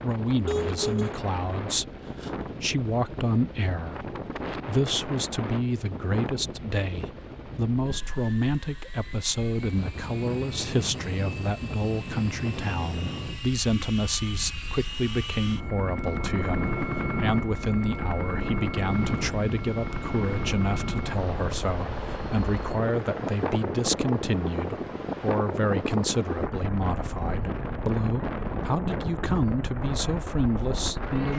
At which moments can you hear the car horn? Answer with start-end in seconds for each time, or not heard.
0.5-1.1.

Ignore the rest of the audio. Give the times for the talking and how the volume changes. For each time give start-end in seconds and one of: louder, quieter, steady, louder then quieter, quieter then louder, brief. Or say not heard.
0.0-31.3 steady.